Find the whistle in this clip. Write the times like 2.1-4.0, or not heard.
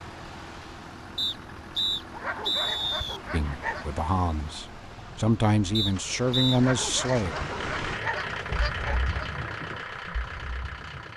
1.1-3.2, 5.8-6.6.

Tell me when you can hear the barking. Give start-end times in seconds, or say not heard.
2.1-3.9, 6.5-9.2.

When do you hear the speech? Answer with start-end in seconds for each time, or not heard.
3.3-7.3.